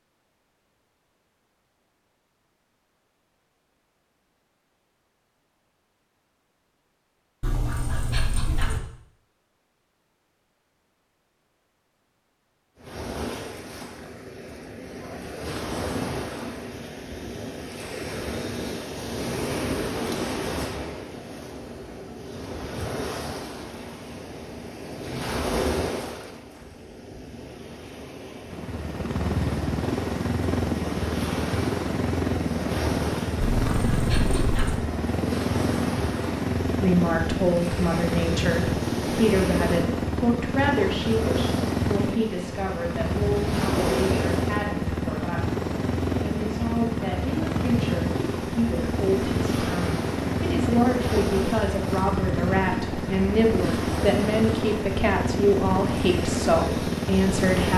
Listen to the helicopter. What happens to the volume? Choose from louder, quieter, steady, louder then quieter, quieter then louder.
steady.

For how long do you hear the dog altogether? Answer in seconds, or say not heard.
3 s.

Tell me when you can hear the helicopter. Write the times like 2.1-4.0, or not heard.
28.5-57.7.